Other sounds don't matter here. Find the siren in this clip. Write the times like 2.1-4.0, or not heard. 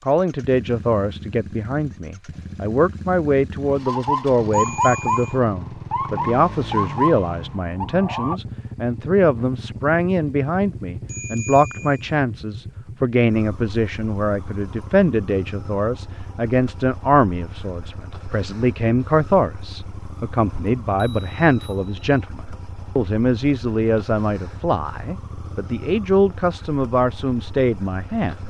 3.6-8.3.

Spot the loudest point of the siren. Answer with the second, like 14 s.
5 s.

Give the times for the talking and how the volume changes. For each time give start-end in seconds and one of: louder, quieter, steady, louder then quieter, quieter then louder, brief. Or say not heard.
0.1-28.4 steady.